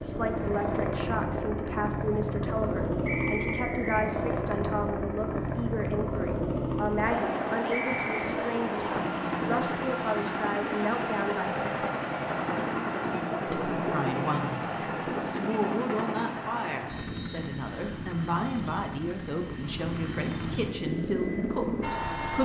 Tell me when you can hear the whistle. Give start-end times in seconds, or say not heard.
3.0-4.0, 7.7-8.3, 16.9-18.0.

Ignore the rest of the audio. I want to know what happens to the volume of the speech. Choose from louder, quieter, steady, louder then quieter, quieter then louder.
steady.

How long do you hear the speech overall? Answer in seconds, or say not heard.
21 s.